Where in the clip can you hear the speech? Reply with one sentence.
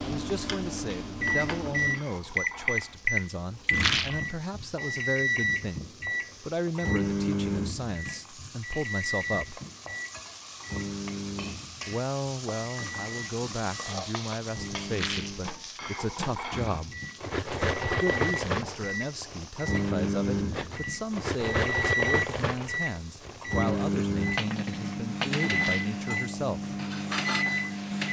You can hear the speech from 0.0 to 9.6 s, from 11.8 to 16.9 s and from 17.8 to 26.7 s.